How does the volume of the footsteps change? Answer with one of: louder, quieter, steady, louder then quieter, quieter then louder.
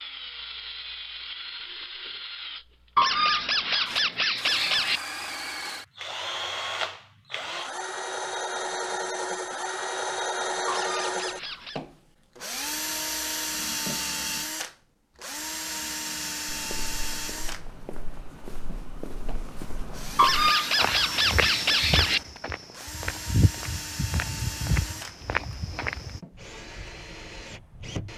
louder.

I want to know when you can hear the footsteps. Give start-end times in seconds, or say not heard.
16.4-26.2.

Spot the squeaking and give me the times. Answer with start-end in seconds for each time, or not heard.
3.0-5.0, 10.7-11.8, 20.1-22.2.